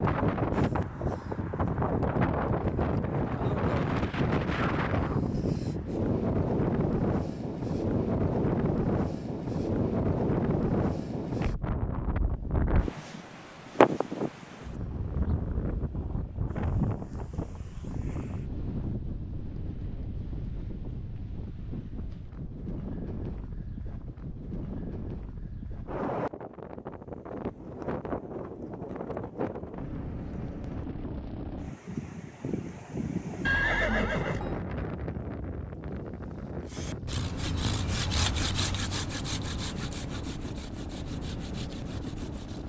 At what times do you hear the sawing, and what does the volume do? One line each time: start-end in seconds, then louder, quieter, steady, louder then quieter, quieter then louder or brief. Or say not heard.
36.6-42.6 quieter.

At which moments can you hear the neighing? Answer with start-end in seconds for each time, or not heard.
33.5-34.6.